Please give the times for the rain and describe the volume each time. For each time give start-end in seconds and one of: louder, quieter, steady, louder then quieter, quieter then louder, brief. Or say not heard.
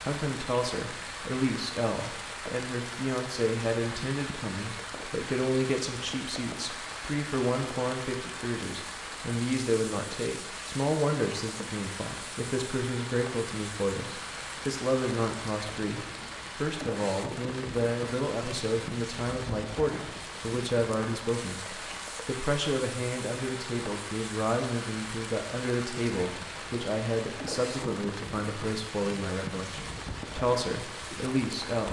0.0-31.8 steady.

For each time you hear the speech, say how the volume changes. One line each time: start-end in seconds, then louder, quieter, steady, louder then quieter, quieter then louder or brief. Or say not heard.
0.0-31.8 steady.